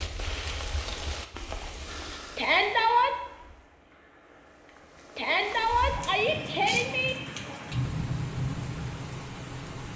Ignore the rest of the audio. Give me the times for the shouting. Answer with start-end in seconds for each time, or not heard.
2.4-3.1, 5.2-7.2.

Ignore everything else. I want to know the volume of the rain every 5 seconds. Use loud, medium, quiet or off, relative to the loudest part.
medium, loud.